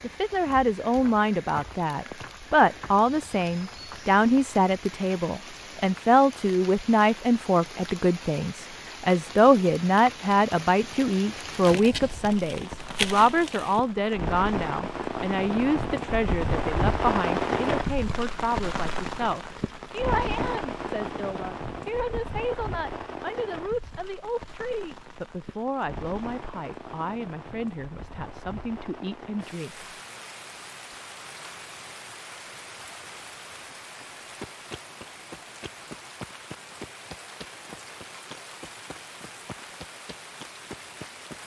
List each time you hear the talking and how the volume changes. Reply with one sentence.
You can hear the talking from 0.0 to 29.9 s, getting quieter.